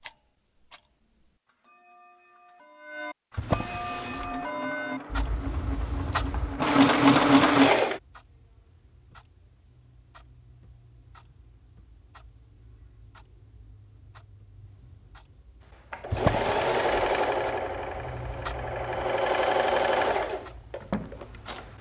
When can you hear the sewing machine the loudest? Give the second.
7 s.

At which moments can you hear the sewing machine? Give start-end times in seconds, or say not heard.
3.9-8.0, 15.9-21.7.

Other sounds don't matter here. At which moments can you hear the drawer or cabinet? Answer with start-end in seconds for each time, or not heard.
3.4-4.4, 16.1-16.9.